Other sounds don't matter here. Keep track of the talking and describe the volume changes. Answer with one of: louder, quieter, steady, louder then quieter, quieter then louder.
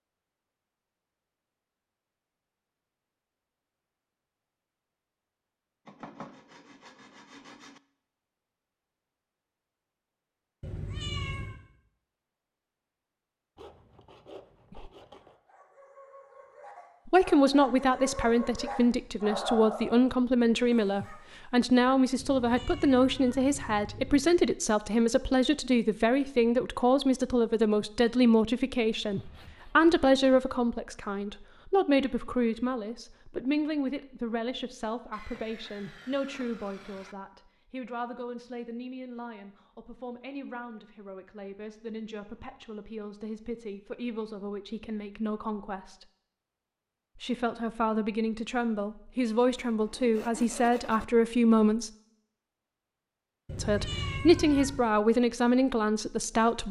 quieter then louder.